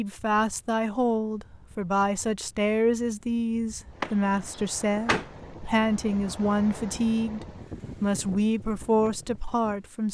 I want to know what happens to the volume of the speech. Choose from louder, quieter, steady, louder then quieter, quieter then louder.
steady.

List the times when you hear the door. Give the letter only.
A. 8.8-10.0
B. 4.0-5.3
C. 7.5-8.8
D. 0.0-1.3
B.